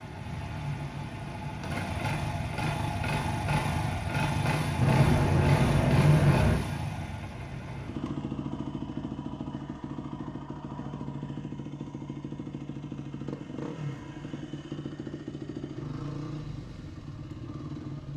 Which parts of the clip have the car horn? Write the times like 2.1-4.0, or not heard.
4.8-6.6.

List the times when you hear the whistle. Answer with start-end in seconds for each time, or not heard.
not heard.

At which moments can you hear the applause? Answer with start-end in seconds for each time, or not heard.
not heard.